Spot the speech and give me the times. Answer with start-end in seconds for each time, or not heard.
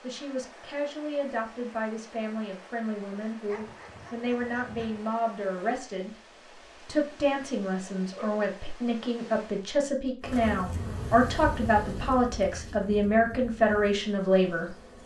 0.0-6.2, 6.8-14.7.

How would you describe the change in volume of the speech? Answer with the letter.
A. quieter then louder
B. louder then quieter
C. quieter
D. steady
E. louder
E.